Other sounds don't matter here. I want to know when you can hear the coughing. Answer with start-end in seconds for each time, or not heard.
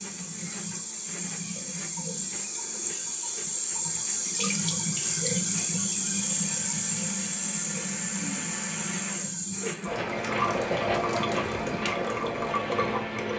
not heard.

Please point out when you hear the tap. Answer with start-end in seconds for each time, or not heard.
0.0-13.3.